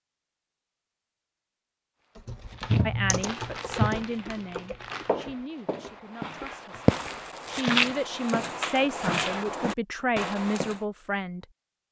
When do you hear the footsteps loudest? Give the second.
8 s.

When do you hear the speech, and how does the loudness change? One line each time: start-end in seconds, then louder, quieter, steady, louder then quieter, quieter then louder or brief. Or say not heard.
2.9-11.8 quieter then louder.